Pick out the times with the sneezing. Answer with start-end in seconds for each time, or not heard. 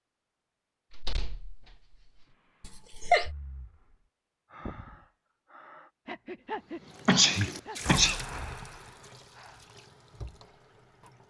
2.6-3.3, 7.0-8.2.